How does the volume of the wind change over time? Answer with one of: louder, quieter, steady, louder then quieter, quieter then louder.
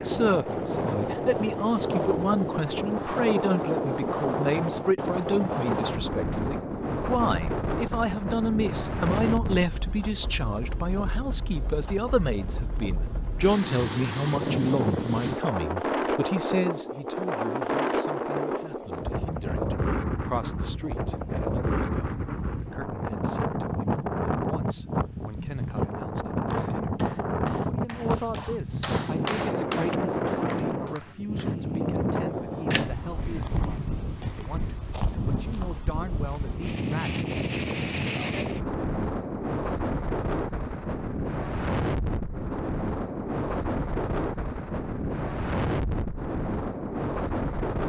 steady.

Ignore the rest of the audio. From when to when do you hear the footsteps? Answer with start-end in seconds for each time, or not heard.
not heard.